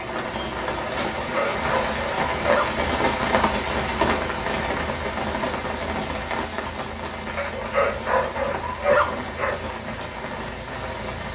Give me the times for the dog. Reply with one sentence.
The dog can be heard from 1.1 to 2.7 s and from 7.3 to 9.6 s.